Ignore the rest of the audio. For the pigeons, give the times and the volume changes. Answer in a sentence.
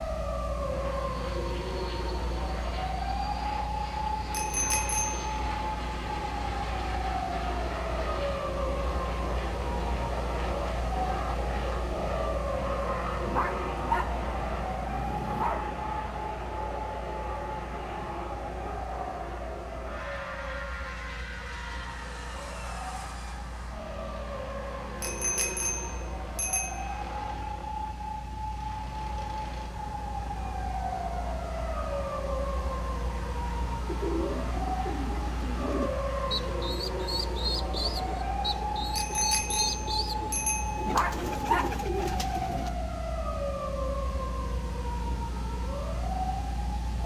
You can hear the pigeons from 33.9 to 42.7 s, at a steady volume.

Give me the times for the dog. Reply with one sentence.
The dog can be heard from 13.2 to 15.7 s and from 40.9 to 42.8 s.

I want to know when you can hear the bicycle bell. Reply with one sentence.
You can hear the bicycle bell from 4.3 to 5.3 s, from 25.0 to 27.0 s and from 39.0 to 41.0 s.